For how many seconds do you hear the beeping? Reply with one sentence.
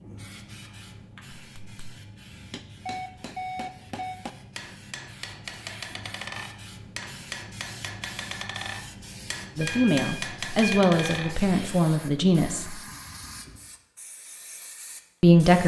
The beeping can be heard for 3 seconds in total.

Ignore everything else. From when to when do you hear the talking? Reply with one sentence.
The talking can be heard from 9.6 to 12.8 s and from 15.2 to 15.6 s.